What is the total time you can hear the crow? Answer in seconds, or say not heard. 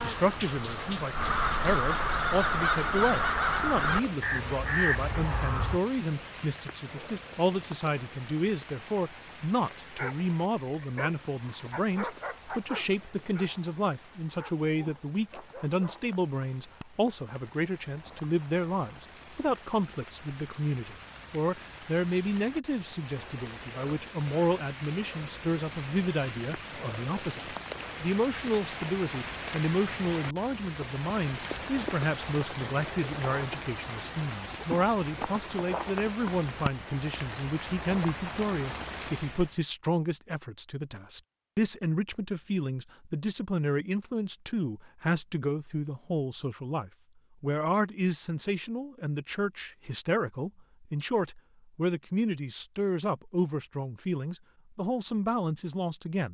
6 s.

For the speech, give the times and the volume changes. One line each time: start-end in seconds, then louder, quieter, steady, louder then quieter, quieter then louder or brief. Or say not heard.
0.0-56.2 steady.